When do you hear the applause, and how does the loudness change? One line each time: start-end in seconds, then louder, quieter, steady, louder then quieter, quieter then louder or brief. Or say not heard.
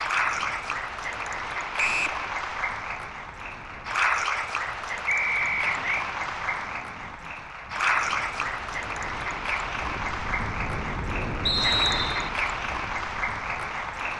0.0-14.1 steady.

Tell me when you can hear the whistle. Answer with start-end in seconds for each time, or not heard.
1.8-2.2, 5.0-6.0, 11.4-12.3.